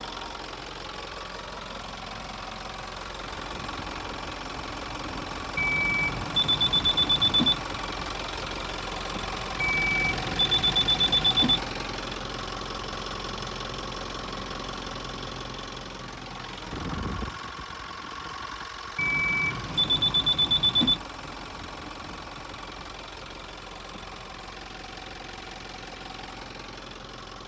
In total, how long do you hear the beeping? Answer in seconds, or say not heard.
6 s.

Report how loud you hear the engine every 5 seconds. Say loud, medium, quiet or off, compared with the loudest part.
loud, loud, loud, loud, medium, medium.